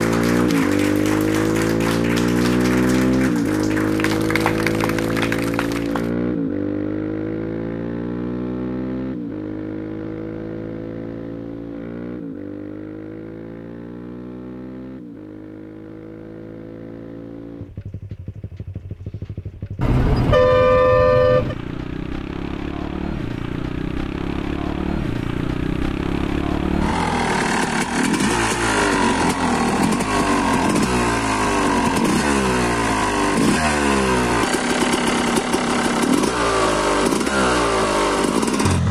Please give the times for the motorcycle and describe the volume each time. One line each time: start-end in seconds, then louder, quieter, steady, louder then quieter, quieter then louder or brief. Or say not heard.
0.0-38.8 quieter then louder.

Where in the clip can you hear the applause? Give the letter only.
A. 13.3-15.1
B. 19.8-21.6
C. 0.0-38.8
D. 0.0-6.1
D.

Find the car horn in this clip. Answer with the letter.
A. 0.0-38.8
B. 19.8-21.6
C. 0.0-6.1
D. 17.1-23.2
B.